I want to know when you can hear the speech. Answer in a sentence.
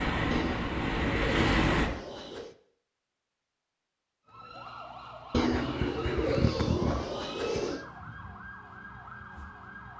The speech can't be heard in this clip.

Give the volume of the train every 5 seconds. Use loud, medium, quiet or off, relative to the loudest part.
loud, off.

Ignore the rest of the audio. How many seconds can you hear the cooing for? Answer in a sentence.
You can hear the cooing for 5 seconds altogether.